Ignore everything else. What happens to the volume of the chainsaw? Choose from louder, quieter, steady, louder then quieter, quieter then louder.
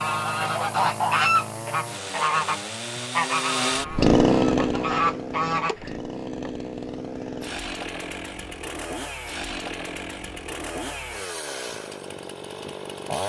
louder then quieter.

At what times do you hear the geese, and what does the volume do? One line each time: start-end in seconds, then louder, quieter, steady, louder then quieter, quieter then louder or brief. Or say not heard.
0.0-6.0 quieter then louder.